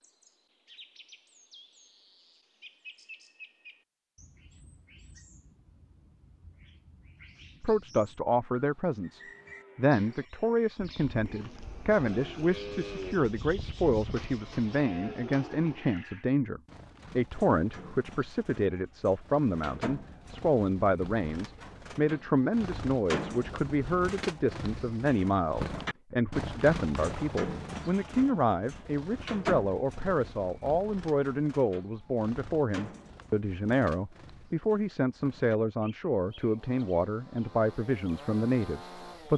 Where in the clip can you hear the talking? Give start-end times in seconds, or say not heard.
7.6-39.3.